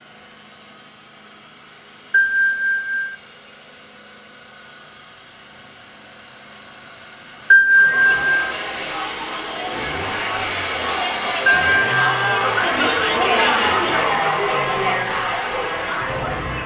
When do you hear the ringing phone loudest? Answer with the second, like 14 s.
8 s.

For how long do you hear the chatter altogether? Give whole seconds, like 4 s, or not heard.
9 s.